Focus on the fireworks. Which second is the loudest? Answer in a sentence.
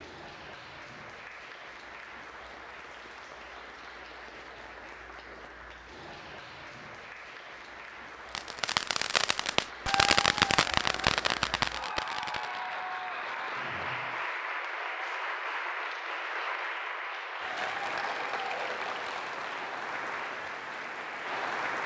The loudest moment of the fireworks is at 10 seconds.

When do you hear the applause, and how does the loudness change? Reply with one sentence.
The applause can be heard from 0.0 to 21.8 s, getting louder.